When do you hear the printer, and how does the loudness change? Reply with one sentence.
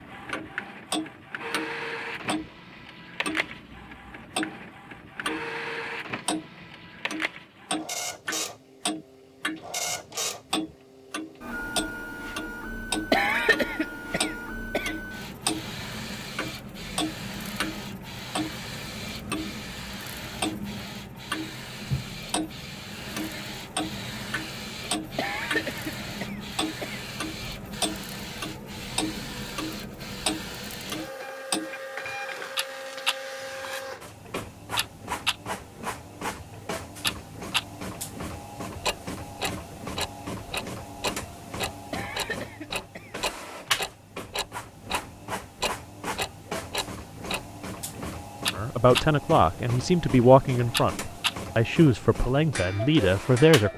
The printer can be heard from 0.0 to 53.7 s, at a steady volume.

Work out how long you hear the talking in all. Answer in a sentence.
You can hear the talking for 5 seconds altogether.